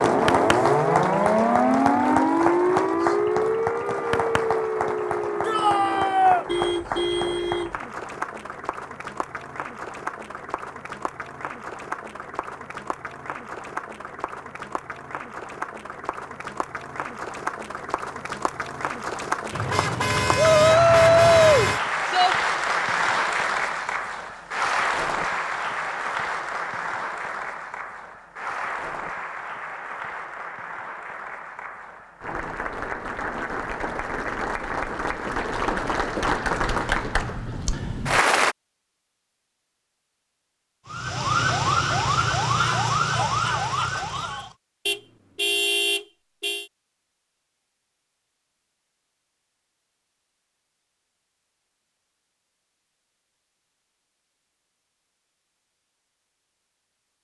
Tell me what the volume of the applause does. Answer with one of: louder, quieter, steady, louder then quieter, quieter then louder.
quieter then louder.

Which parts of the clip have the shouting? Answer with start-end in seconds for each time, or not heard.
5.4-6.5, 20.4-22.4, 42.5-44.5.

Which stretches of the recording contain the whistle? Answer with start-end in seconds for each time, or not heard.
not heard.